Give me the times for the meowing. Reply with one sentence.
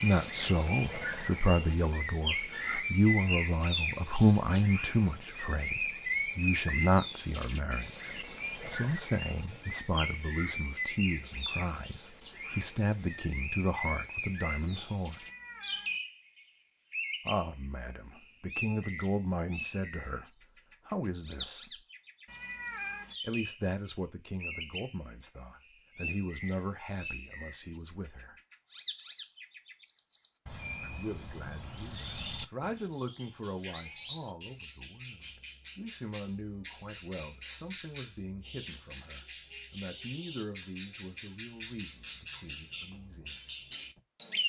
The meowing can be heard from 15.1 to 15.9 s and from 22.2 to 23.1 s.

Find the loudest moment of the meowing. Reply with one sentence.
The loudest moment of the meowing is at 23 seconds.